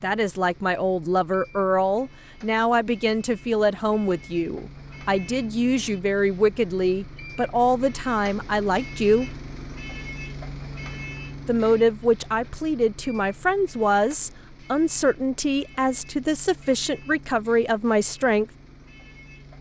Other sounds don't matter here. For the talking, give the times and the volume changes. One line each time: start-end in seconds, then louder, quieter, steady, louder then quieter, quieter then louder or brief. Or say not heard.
0.0-9.3 steady
11.4-18.5 steady.